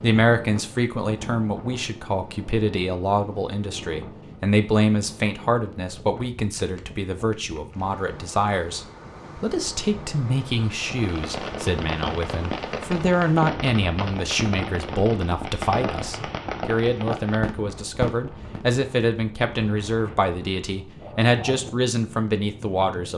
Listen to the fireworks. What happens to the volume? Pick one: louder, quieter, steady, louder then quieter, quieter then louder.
steady.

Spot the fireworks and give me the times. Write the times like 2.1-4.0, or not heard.
10.8-18.6.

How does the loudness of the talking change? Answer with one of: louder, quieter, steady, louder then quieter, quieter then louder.
steady.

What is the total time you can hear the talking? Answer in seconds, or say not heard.
23 s.